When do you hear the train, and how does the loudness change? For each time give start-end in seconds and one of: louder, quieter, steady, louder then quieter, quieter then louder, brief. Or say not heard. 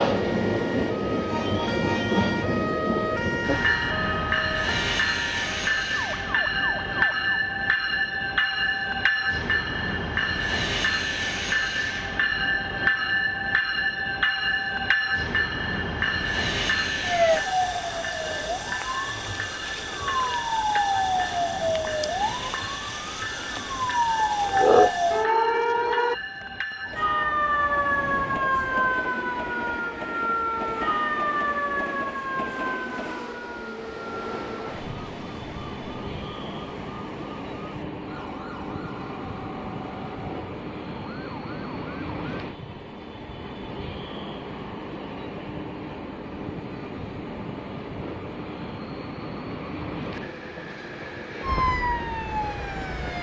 0.0-53.1 quieter.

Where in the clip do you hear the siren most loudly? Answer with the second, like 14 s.
25 s.